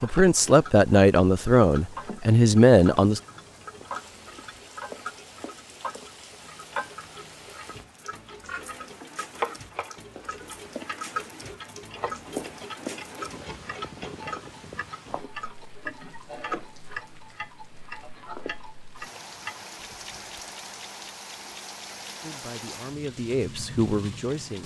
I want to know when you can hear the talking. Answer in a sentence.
You can hear the talking from 0.0 to 3.2 s and from 22.2 to 24.6 s.